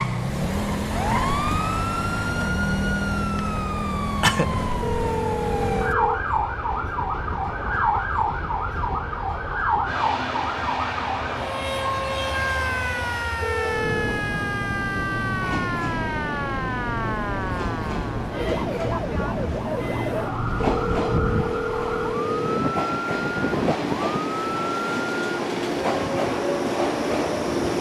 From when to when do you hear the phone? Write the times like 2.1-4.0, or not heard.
4.8-6.2, 13.4-14.2, 20.6-22.6.